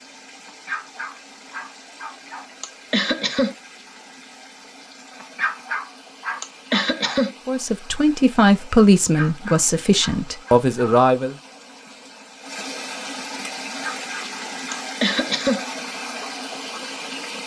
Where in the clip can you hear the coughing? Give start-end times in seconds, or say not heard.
2.6-3.5, 6.4-7.3, 14.7-15.6.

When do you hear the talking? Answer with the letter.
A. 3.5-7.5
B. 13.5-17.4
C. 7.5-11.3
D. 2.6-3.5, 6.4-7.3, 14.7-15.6
C.